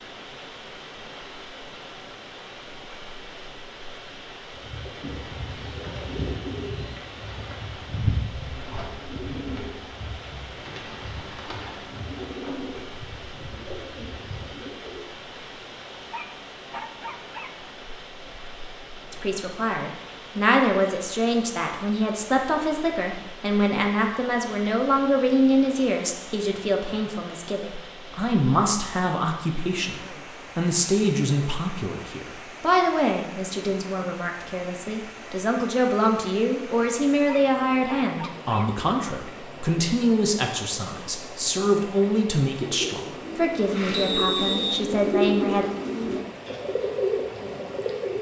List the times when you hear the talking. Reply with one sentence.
You can hear the talking from 19.1 to 45.6 s.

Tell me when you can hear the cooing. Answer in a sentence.
You can hear the cooing from 4.5 to 15.1 s and from 42.7 to 48.1 s.